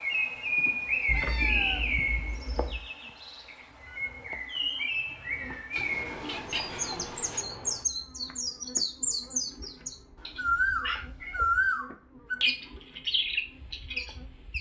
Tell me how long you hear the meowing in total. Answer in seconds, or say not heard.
5 s.